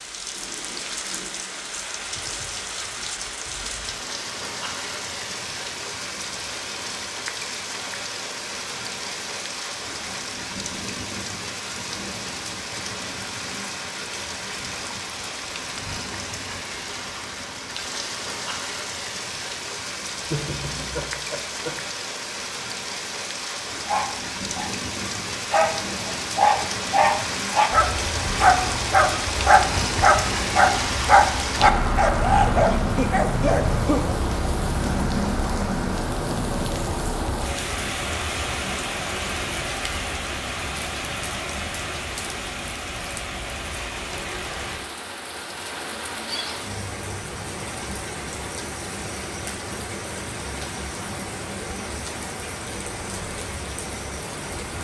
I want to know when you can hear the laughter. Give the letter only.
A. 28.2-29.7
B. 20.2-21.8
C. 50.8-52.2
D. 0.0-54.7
B.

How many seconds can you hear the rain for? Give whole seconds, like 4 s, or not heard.
55 s.